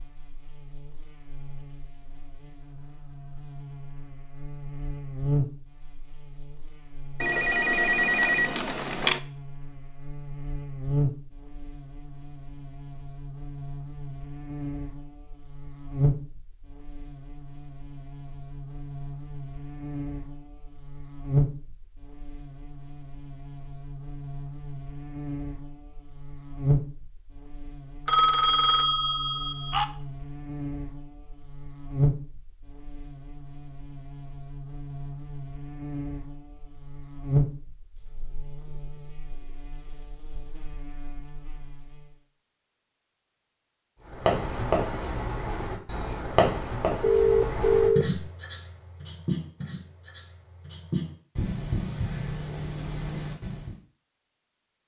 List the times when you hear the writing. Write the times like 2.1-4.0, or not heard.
44.0-53.8.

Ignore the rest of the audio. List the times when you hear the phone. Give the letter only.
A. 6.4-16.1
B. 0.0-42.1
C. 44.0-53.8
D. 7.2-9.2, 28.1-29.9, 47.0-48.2
D.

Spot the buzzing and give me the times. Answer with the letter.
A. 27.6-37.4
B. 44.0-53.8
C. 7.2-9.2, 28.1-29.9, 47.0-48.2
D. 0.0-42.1
D.